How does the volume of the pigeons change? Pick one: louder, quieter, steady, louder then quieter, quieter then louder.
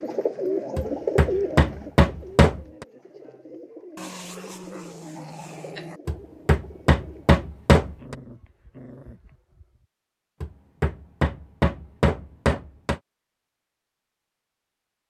quieter.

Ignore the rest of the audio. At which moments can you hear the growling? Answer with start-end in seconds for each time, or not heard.
4.0-6.0, 7.9-9.8.